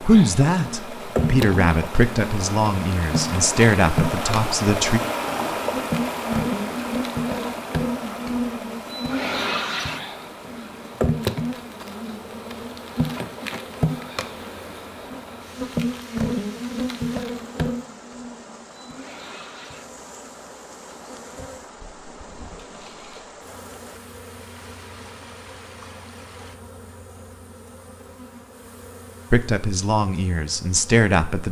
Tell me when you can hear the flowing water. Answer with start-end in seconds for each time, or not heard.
0.0-26.6.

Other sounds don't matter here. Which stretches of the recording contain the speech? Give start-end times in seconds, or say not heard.
0.0-5.0, 29.3-31.4.